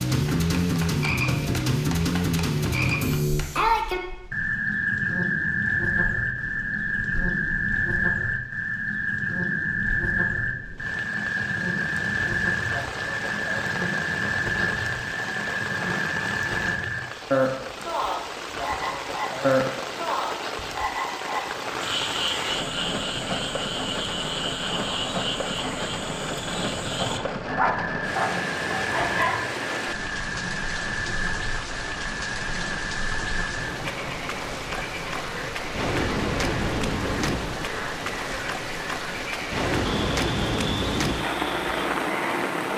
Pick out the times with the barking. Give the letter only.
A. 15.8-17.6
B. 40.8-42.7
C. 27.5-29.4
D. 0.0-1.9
C.